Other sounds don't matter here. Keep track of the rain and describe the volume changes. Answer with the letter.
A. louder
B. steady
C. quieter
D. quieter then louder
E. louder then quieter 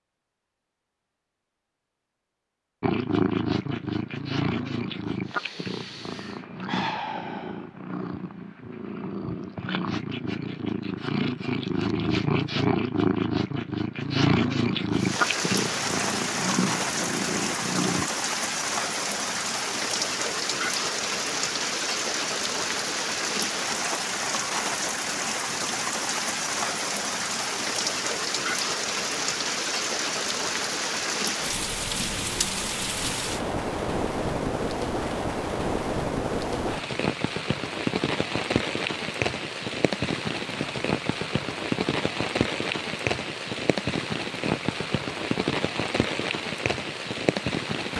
B.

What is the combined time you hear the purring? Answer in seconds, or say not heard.
15 s.